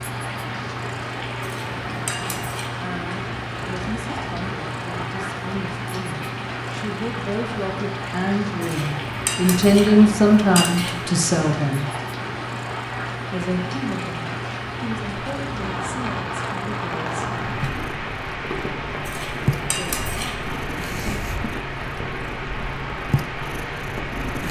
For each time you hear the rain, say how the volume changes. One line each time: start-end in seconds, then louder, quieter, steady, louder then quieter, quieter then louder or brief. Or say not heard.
0.0-24.4 steady.